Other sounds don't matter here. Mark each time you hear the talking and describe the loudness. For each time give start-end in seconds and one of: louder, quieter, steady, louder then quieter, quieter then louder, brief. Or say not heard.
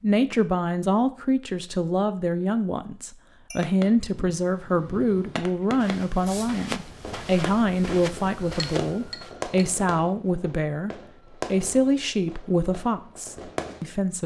0.0-14.2 steady.